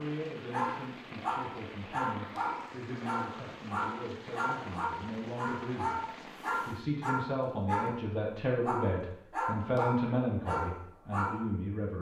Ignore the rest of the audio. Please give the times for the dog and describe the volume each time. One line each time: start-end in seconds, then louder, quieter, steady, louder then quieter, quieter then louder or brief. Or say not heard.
0.5-8.0 steady
8.6-11.4 brief.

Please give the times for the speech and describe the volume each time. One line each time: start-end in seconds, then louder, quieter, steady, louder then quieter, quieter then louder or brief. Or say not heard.
0.0-11.9 louder.